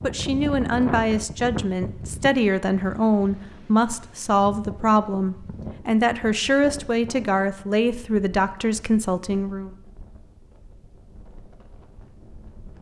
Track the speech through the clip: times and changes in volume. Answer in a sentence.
You can hear the speech from 0.0 to 9.8 s, at a steady volume.